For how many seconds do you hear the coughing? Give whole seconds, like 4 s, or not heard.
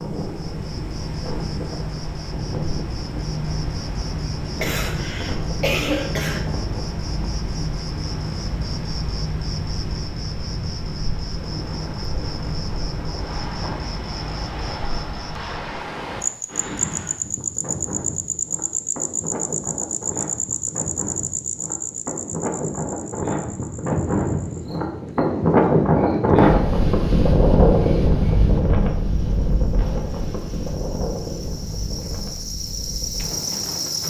2 s.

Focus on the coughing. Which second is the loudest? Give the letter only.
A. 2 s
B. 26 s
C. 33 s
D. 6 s
D.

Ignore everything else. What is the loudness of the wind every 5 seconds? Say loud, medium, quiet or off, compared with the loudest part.
quiet, quiet, quiet, quiet, medium, loud, quiet.